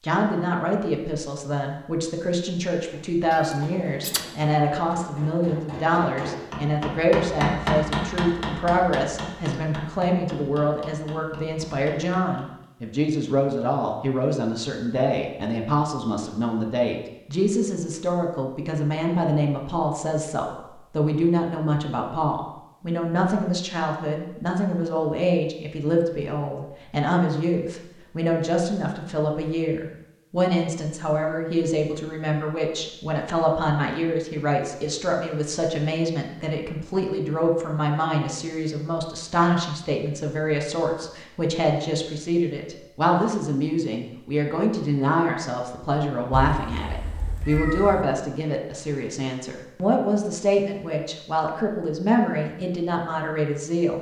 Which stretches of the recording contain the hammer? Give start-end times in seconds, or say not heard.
2.8-12.7.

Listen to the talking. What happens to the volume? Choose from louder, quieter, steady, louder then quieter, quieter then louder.
steady.